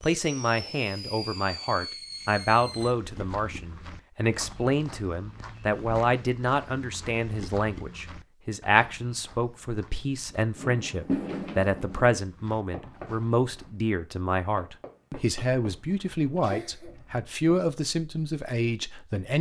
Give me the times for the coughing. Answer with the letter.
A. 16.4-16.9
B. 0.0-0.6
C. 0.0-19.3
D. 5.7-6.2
A.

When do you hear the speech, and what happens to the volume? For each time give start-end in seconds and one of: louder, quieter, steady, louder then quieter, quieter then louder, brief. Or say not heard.
0.0-19.3 steady.